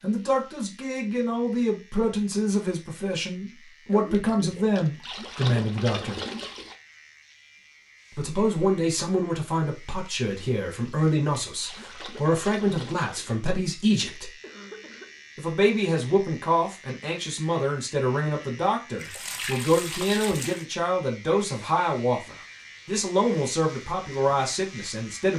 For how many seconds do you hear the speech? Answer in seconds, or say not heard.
22 s.